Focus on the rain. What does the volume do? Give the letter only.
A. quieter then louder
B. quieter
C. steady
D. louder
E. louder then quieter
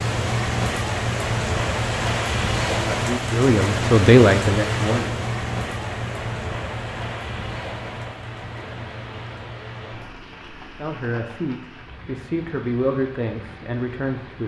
B.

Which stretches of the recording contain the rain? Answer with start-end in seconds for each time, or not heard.
0.0-14.4.